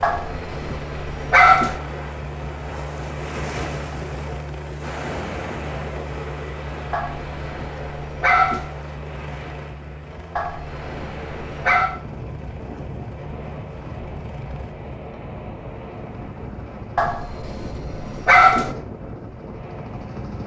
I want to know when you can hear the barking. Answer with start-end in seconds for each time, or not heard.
0.0-1.8, 6.9-8.7, 10.3-11.9, 16.9-18.8.